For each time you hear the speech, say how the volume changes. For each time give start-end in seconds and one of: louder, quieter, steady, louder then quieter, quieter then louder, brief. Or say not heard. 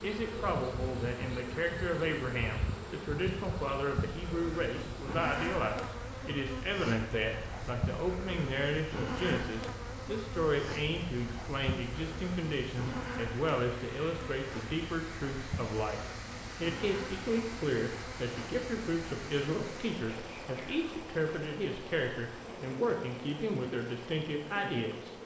0.0-25.1 steady.